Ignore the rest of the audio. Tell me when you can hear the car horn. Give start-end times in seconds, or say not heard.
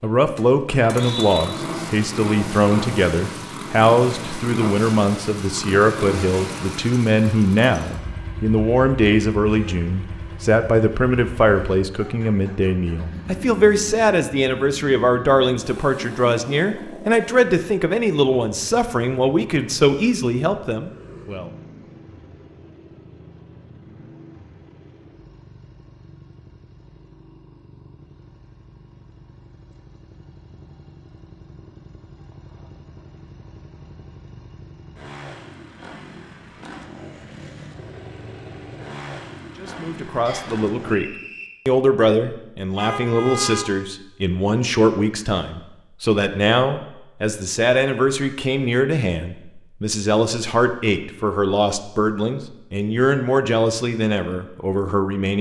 9.4-9.8, 42.8-43.6.